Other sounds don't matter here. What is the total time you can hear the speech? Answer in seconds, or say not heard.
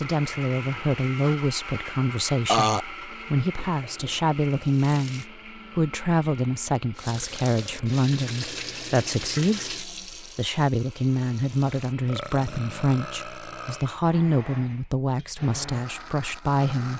17 s.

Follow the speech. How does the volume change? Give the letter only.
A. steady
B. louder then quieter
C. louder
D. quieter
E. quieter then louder
A.